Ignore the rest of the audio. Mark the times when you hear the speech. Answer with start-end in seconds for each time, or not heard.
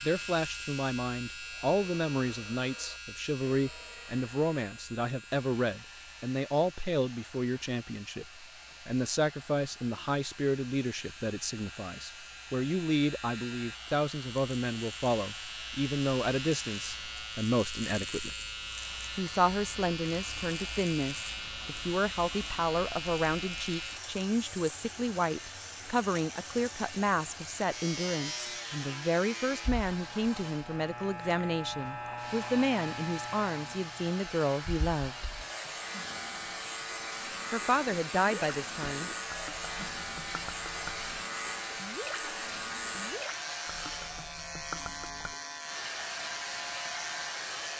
0.0-18.4, 19.1-35.3, 37.5-39.1.